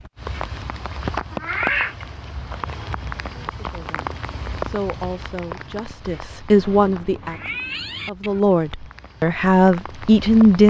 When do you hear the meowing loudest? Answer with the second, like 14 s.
2 s.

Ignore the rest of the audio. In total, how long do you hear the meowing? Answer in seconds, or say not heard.
3 s.